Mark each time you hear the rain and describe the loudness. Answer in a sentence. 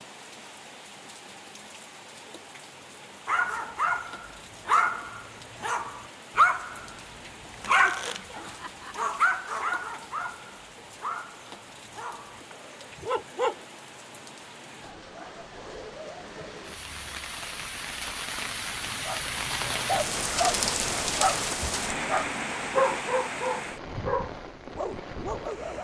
You can hear the rain from 0.0 to 25.8 s, getting louder.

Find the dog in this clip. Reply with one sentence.
The dog can be heard from 3.2 to 13.6 s and from 19.1 to 25.8 s.